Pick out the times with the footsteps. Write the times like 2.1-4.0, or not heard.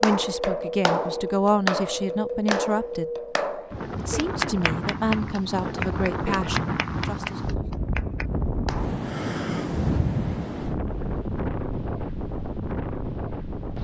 not heard.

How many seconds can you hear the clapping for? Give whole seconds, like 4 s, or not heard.
9 s.